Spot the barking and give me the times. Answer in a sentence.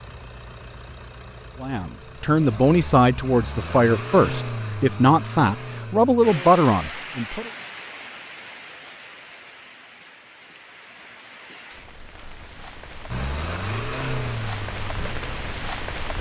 You can't hear the barking here.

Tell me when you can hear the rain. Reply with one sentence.
The rain can be heard from 6.2 to 16.1 s.